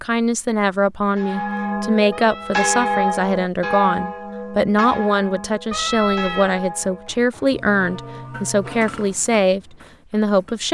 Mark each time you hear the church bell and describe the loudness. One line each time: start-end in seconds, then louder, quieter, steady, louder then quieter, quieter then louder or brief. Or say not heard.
1.1-9.2 quieter.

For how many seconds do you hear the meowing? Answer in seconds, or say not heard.
2 s.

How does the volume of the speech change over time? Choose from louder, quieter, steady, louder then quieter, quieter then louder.
steady.